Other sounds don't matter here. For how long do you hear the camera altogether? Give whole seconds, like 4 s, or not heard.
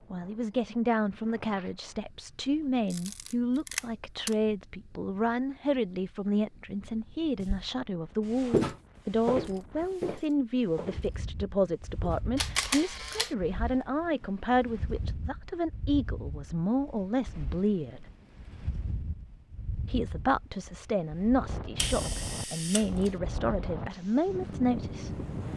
4 s.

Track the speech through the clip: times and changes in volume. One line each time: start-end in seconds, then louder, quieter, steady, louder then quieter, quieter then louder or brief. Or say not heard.
0.1-18.1 steady
19.9-25.2 steady.